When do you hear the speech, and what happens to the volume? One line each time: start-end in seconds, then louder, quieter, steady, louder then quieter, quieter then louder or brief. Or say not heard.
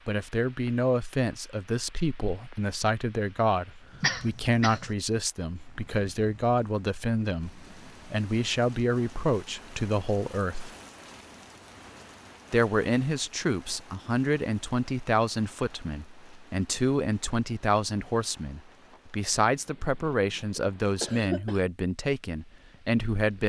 0.1-10.7 steady
12.5-23.4 steady.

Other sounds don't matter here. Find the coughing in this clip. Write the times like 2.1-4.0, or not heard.
4.0-5.0, 20.1-21.6.